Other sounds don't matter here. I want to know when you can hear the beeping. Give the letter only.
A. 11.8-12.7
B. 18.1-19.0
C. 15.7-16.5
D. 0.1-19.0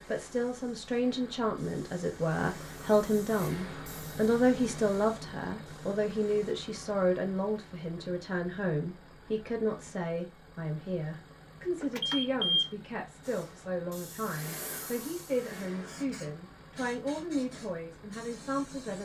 A.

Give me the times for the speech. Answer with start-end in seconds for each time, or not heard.
0.1-19.0.